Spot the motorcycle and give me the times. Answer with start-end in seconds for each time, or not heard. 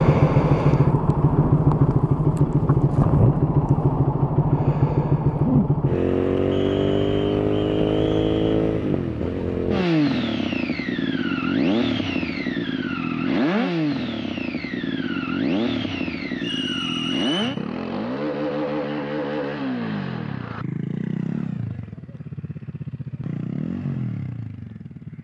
0.0-25.1.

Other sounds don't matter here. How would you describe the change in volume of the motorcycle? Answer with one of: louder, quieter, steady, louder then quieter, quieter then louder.
quieter.